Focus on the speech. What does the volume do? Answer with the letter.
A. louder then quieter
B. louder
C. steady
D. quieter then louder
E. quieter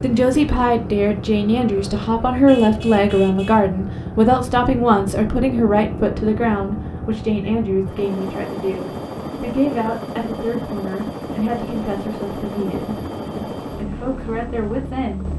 E.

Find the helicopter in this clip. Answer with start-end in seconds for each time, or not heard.
0.0-15.3.